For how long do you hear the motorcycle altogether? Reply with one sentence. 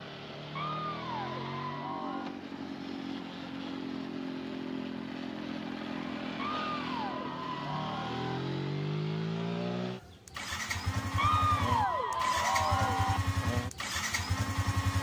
The motorcycle can be heard for 15 seconds in total.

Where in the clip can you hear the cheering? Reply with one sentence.
You can hear the cheering from 0.6 to 2.4 s, from 6.3 to 8.4 s and from 11.2 to 13.2 s.